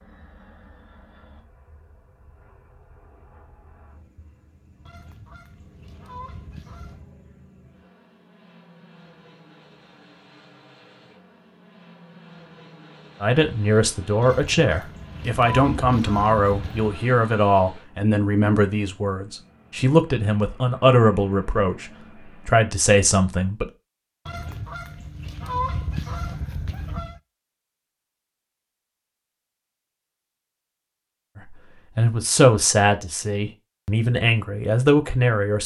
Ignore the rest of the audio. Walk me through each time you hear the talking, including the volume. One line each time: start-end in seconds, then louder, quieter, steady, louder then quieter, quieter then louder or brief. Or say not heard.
13.2-23.7 steady
31.4-35.6 quieter then louder.